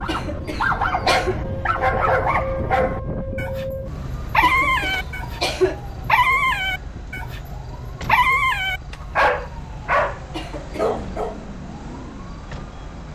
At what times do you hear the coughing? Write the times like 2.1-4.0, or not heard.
0.1-1.4, 4.4-5.8, 10.3-10.9.